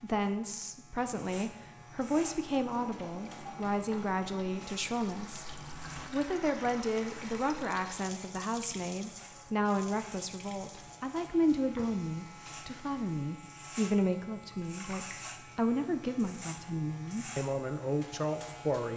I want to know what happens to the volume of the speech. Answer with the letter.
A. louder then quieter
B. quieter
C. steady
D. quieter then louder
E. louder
C.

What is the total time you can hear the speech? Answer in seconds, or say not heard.
18 s.